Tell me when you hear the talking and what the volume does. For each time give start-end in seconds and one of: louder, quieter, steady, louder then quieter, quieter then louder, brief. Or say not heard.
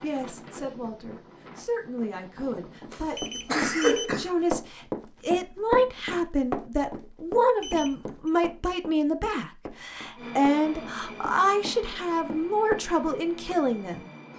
0.0-14.1 louder.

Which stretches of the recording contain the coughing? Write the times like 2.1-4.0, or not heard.
2.9-4.3.